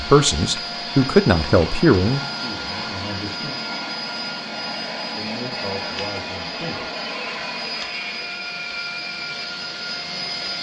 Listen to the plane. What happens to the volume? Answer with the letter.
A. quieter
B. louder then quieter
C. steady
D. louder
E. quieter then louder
C.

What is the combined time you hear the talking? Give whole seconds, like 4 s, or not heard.
5 s.